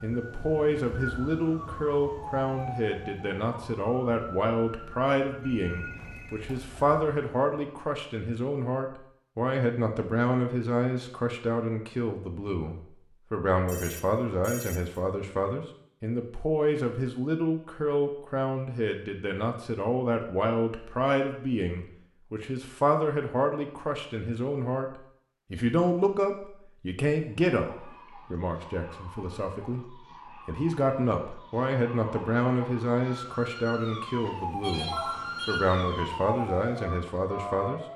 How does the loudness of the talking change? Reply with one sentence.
The loudness of the talking stays about the same.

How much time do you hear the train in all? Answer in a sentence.
The train can't be heard in this clip.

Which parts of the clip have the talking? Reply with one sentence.
You can hear the talking from 0.0 to 37.8 s.